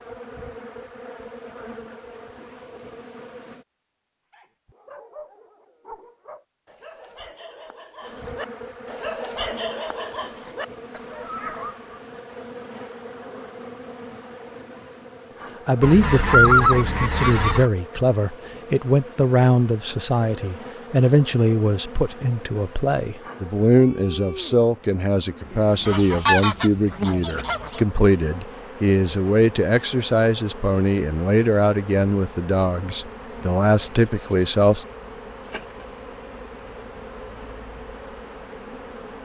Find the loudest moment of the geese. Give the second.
17 s.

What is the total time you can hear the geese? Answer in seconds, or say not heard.
4 s.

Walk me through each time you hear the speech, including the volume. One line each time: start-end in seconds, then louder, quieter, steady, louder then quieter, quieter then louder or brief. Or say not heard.
15.7-34.9 steady.